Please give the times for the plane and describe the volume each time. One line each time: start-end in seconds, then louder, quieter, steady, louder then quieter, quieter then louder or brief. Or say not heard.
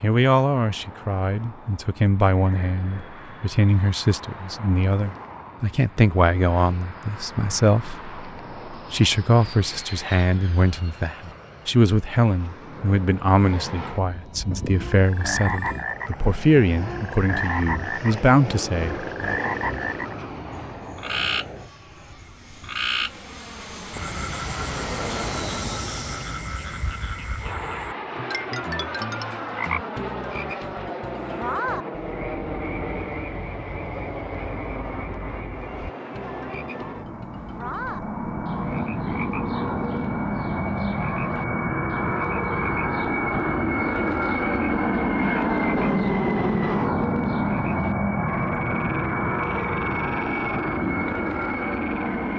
0.0-52.3 louder.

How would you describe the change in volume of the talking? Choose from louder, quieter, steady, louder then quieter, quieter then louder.
steady.